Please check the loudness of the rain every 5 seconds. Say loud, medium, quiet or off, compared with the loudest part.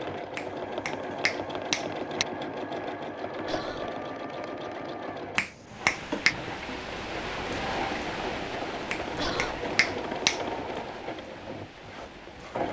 off, loud, medium.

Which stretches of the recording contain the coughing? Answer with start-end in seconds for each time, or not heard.
3.5-3.9, 9.2-9.6.